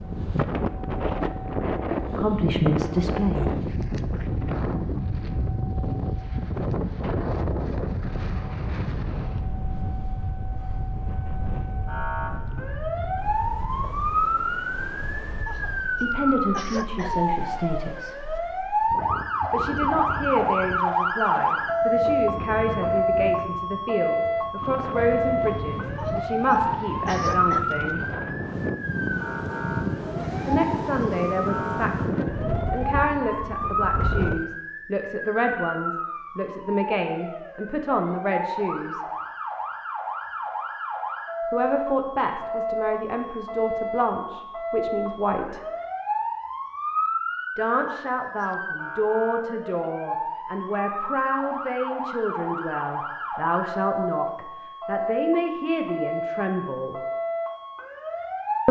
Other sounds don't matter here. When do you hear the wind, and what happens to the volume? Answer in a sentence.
The wind can be heard from 0.0 to 34.5 s, getting quieter then louder.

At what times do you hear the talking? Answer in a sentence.
The talking can be heard from 2.1 to 3.6 s, from 16.0 to 18.2 s, from 19.5 to 28.1 s, from 30.4 to 39.0 s, from 41.5 to 45.6 s and from 47.5 to 57.0 s.